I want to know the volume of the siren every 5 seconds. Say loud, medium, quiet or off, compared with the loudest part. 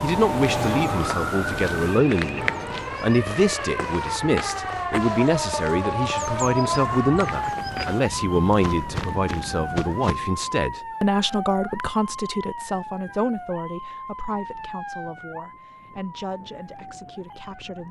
loud, loud, medium, quiet.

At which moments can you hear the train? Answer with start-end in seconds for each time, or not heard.
0.0-3.1.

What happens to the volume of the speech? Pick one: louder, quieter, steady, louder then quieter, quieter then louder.
quieter.